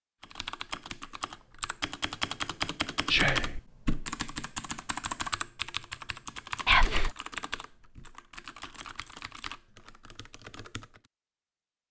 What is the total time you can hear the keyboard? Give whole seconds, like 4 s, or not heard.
11 s.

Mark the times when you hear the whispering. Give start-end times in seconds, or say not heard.
3.0-3.6, 6.7-7.2.